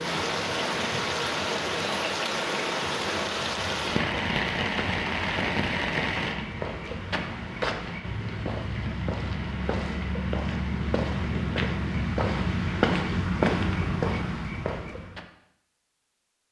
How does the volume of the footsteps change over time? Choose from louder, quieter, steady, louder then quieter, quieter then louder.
louder.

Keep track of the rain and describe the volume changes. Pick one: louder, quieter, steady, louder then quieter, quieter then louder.
quieter.